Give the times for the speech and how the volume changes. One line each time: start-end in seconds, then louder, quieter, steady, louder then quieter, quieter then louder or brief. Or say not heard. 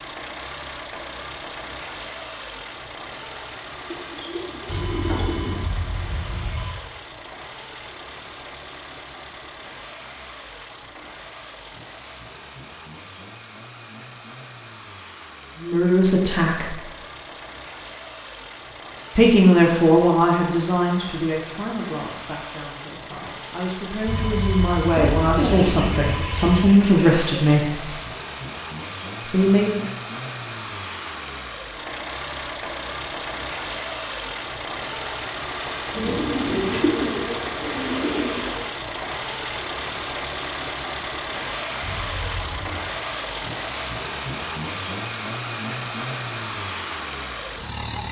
15.6-16.8 brief
19.1-27.9 quieter then louder
29.2-29.9 brief.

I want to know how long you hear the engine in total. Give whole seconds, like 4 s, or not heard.
48 s.